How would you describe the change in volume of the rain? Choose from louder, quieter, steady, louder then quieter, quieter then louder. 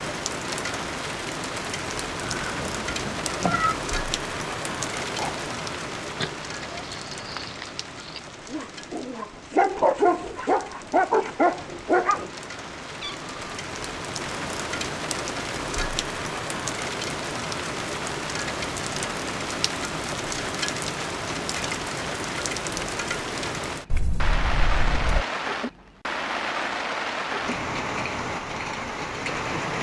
quieter then louder.